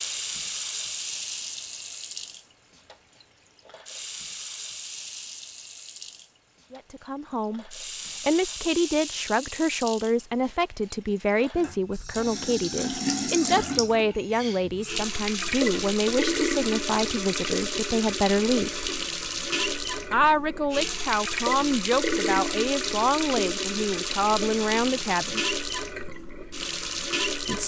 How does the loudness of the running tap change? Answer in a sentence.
The volume of the running tap goes up.